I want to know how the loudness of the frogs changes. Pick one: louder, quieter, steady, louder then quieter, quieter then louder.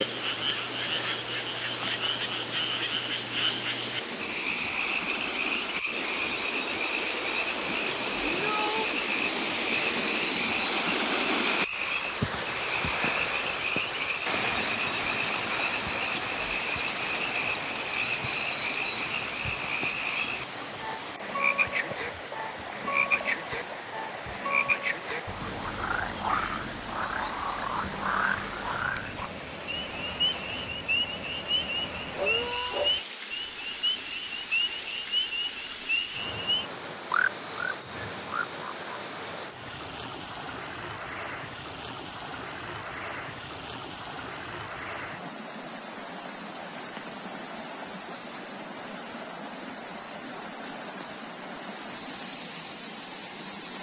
steady.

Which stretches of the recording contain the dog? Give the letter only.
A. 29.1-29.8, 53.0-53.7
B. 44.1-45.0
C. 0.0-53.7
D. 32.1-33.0
D.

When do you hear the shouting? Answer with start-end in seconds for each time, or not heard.
8.2-8.9, 32.1-32.9.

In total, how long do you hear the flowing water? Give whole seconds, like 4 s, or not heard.
54 s.